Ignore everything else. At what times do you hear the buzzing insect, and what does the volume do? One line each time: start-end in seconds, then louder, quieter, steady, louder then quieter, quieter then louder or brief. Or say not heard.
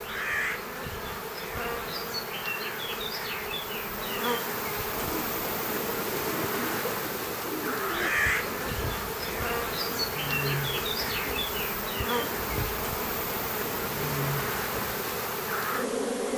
0.0-16.3 steady.